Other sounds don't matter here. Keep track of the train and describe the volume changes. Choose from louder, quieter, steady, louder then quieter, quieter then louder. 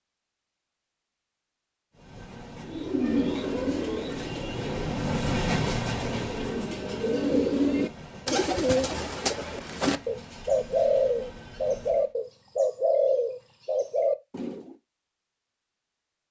louder then quieter.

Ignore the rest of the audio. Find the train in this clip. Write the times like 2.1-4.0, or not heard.
1.9-12.2.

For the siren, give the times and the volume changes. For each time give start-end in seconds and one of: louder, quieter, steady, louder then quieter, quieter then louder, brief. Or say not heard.
not heard.